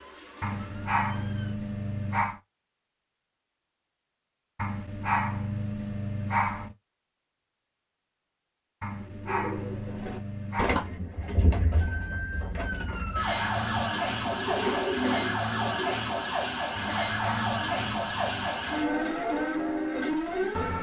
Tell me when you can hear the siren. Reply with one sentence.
You can hear the siren from 0.0 to 1.6 s and from 11.8 to 20.7 s.